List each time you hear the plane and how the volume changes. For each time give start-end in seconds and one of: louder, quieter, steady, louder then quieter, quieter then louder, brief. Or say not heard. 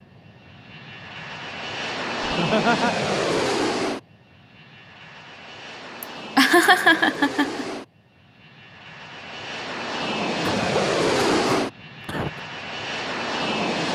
0.1-13.9 quieter then louder.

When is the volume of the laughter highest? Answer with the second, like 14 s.
7 s.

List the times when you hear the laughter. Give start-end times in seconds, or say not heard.
2.2-3.0, 6.0-7.7, 10.4-12.4.